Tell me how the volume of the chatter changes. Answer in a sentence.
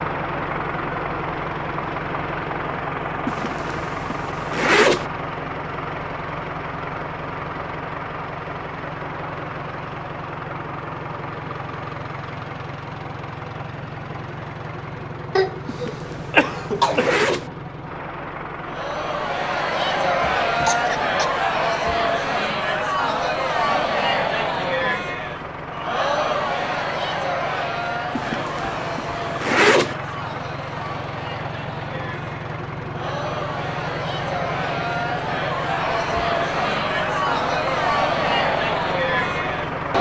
The volume of the chatter goes down, then up.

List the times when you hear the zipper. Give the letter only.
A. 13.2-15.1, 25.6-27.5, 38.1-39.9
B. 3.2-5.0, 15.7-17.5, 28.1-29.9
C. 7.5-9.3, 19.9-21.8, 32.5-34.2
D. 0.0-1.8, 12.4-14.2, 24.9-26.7
B.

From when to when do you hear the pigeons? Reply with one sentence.
You can't hear the pigeons here.